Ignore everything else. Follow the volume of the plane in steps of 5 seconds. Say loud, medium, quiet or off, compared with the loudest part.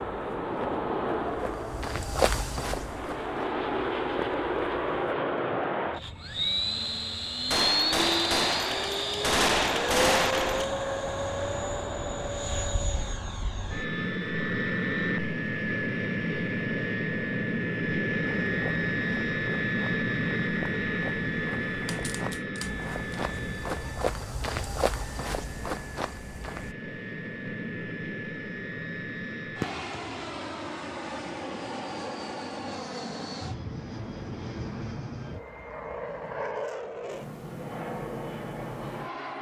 loud, loud, loud, loud, loud, medium, medium, medium.